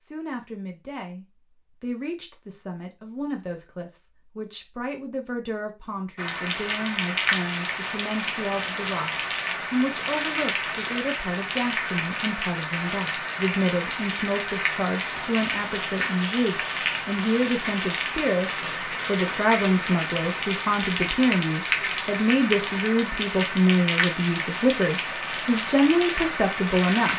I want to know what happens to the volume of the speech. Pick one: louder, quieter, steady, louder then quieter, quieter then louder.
louder.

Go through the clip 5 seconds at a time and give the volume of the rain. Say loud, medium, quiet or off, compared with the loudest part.
off, loud, loud, loud, loud, loud.